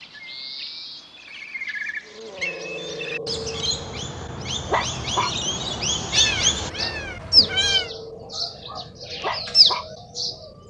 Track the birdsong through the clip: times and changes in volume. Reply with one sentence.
You can hear the birdsong from 0.0 to 10.4 s, getting louder.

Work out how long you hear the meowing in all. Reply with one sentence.
You can hear the meowing for 2 seconds altogether.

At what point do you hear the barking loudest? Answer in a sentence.
The loudest moment of the barking is at 5 seconds.